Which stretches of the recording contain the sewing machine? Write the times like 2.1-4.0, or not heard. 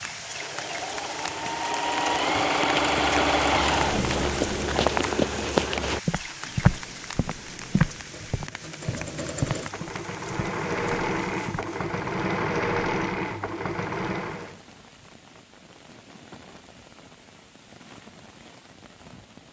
0.0-4.8, 6.1-14.6.